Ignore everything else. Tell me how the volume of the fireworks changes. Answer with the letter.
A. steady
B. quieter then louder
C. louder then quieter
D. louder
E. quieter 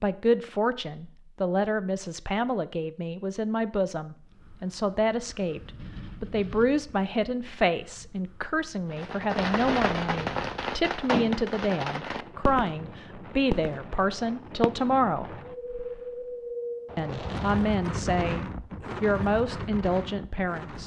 E.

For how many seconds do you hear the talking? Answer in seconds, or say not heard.
19 s.